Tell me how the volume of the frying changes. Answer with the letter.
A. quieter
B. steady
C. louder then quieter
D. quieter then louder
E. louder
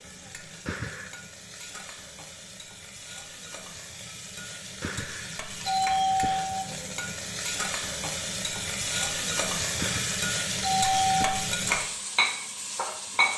E.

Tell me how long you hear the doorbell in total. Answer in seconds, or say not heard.
4 s.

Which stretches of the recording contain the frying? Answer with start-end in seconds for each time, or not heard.
0.0-13.3.